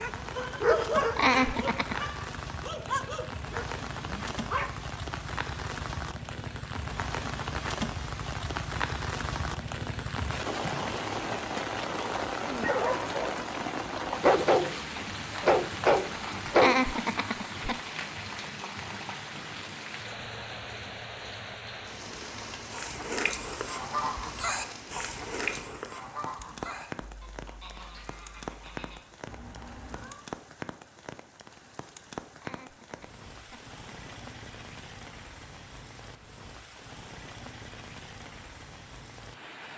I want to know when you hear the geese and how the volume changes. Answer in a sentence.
You can hear the geese from 22.7 to 30.2 s, getting quieter.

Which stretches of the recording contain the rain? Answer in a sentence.
You can hear the rain from 0.0 to 39.7 s.